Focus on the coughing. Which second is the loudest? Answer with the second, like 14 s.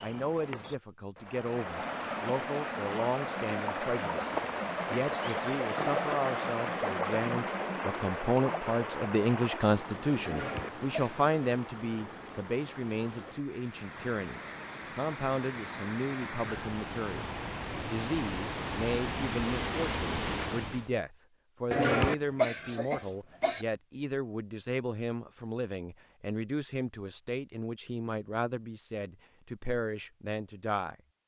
22 s.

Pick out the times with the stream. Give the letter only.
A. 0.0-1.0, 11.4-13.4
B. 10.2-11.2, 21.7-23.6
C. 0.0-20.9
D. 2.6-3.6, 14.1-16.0
C.